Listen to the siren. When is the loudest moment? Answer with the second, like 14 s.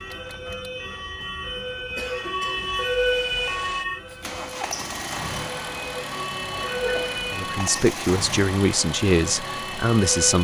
3 s.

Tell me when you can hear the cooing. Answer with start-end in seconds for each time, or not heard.
not heard.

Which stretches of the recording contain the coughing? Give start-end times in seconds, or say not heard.
1.9-2.8, 6.5-7.3.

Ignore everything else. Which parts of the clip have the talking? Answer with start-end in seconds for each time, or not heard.
7.3-10.3.